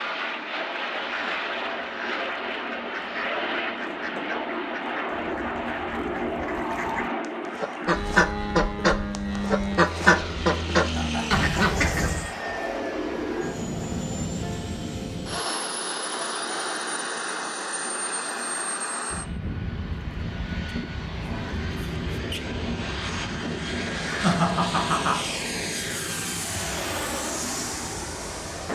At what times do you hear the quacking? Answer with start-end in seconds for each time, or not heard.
1.0-12.3.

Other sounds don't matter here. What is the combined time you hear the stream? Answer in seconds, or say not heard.
not heard.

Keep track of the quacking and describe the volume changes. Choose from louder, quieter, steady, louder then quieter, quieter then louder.
louder.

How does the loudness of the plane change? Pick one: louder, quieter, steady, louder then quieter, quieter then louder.
steady.